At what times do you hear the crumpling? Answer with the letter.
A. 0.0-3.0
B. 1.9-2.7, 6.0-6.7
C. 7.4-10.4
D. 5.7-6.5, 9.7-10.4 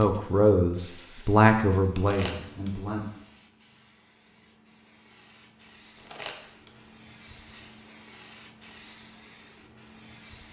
B.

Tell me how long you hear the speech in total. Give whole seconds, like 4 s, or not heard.
3 s.